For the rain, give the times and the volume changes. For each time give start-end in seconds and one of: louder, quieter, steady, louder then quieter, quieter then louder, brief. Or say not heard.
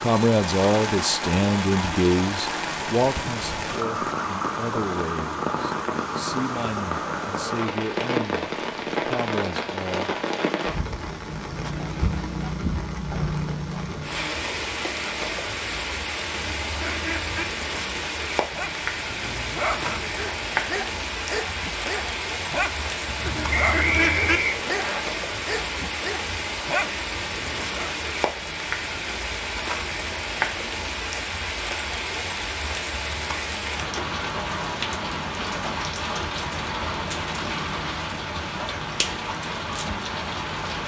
0.0-40.8 steady.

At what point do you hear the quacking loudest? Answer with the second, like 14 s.
24 s.